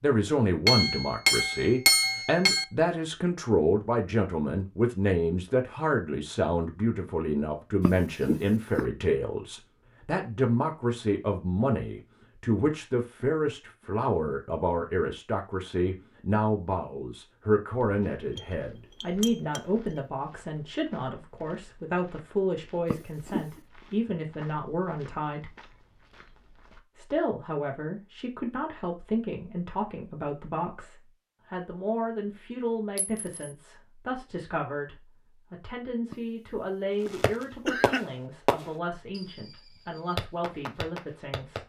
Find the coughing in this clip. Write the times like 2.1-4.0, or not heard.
7.8-8.8, 22.9-23.6, 36.1-38.0.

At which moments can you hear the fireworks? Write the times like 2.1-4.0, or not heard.
37.0-41.6.